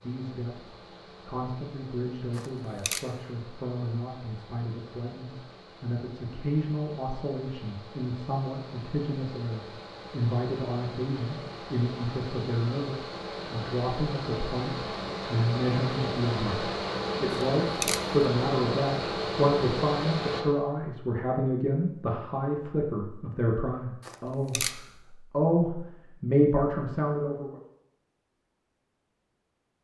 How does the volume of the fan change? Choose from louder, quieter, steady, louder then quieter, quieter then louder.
louder.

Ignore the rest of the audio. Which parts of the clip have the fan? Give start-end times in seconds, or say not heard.
0.0-20.4.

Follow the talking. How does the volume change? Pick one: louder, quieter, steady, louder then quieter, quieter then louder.
louder.